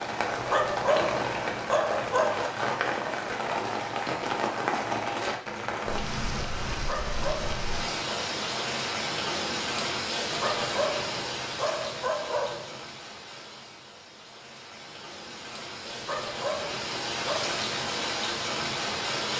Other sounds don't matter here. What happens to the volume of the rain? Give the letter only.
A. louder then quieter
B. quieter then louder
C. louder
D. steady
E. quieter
B.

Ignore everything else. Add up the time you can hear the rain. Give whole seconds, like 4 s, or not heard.
19 s.